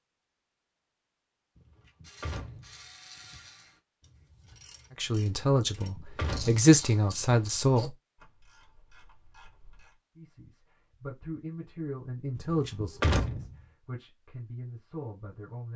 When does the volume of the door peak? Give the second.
13 s.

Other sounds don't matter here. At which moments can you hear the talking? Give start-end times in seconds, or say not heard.
5.0-7.9, 10.2-15.7.